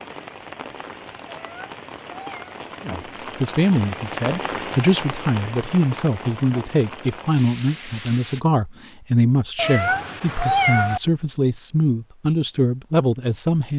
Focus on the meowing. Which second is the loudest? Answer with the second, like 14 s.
11 s.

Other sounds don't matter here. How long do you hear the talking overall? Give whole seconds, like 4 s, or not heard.
11 s.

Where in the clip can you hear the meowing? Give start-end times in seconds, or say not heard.
1.2-2.5, 9.6-11.0.